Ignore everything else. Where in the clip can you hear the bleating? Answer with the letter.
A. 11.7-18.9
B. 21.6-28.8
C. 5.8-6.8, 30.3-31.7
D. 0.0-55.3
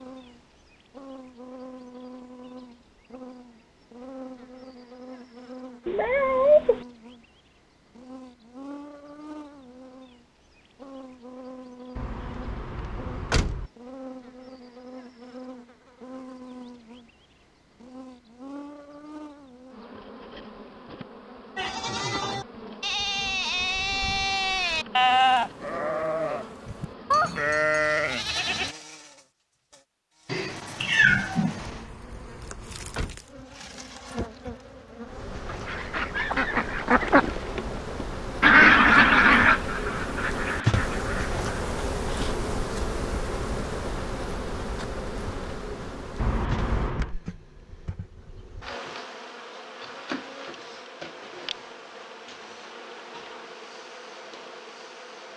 B.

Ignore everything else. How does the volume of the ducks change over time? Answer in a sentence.
The volume of the ducks goes up, then down.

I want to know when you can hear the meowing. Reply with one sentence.
The meowing can be heard from 5.8 to 6.8 s and from 30.3 to 31.7 s.